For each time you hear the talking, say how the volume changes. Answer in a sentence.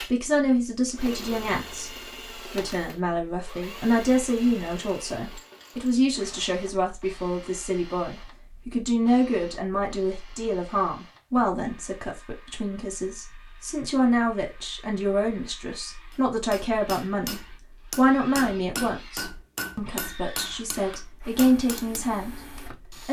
You can hear the talking briefly from 0.0 to 1.9 s; and from 2.5 to 23.0 s, at a steady volume.